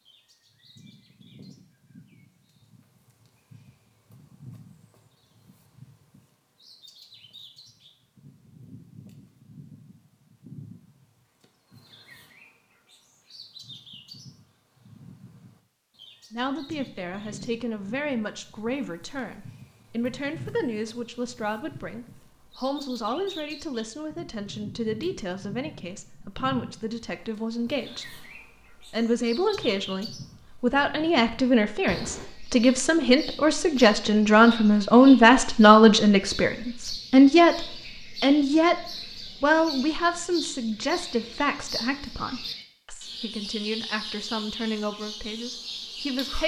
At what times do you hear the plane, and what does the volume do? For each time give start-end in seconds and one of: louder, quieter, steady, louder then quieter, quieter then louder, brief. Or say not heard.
not heard.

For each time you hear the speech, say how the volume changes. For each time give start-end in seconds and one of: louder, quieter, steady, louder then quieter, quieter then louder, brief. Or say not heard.
16.3-46.4 louder then quieter.